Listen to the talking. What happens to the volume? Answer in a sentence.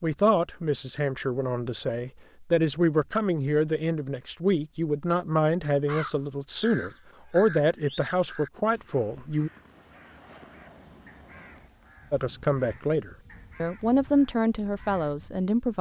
The volume of the talking stays about the same.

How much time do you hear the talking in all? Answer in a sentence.
You can hear the talking for 13 seconds altogether.